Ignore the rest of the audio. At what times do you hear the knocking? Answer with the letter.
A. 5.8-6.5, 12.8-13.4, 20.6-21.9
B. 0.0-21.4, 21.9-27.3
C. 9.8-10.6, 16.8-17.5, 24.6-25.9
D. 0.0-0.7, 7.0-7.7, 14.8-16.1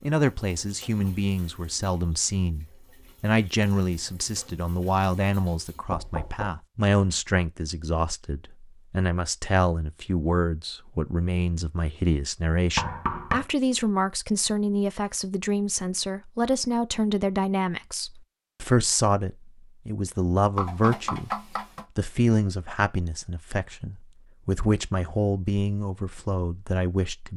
A.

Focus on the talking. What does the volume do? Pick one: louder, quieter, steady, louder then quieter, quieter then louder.
steady.